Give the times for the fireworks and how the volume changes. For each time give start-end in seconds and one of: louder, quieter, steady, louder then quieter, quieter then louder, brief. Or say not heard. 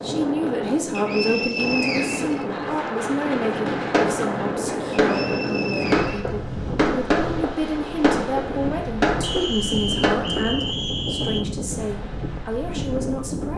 3.9-10.7 steady.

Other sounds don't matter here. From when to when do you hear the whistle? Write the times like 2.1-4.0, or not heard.
0.9-2.5, 5.0-6.3, 9.2-11.4.